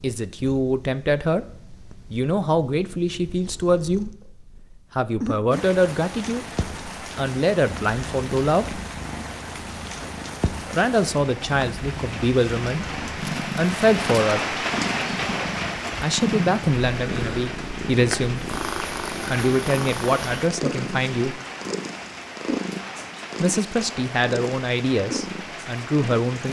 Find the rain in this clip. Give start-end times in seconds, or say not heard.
5.5-26.4.